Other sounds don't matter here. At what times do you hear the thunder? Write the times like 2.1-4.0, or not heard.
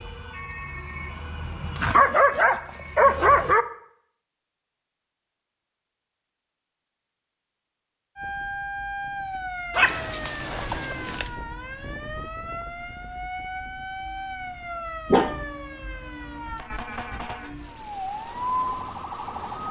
not heard.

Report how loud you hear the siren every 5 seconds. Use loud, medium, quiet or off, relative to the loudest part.
medium, loud, loud, loud.